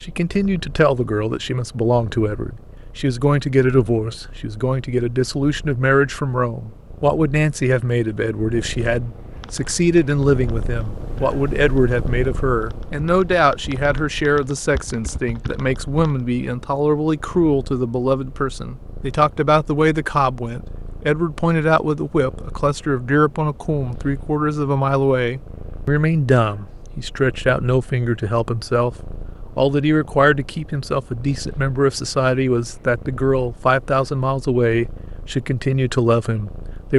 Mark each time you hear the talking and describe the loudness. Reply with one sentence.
You can hear the talking from 0.0 to 28.9 s, at a steady volume; and from 29.6 to 36.9 s, at a steady volume.